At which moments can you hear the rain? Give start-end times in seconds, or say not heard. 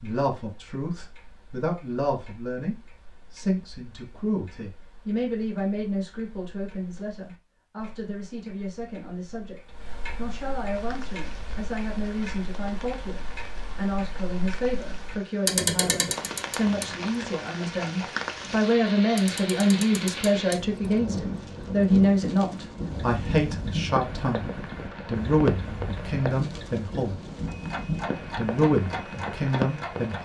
10.7-30.2.